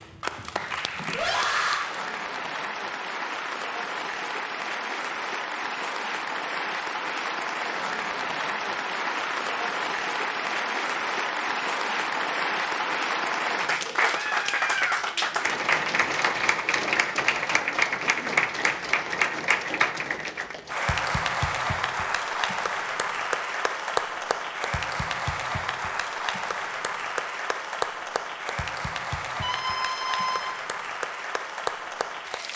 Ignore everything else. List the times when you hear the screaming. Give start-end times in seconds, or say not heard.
1.1-1.9, 14.1-15.0, 29.4-30.5.